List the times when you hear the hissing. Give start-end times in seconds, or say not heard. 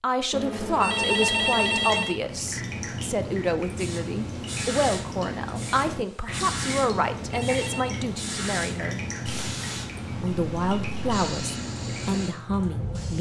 3.8-13.1.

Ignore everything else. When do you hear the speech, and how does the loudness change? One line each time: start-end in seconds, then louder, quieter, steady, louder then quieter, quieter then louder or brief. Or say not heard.
0.0-9.0 steady
10.2-13.1 brief.